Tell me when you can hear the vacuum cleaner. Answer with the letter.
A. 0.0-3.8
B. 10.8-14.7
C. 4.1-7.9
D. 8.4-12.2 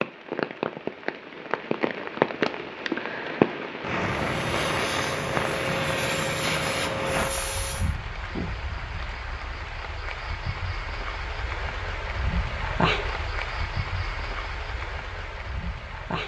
C.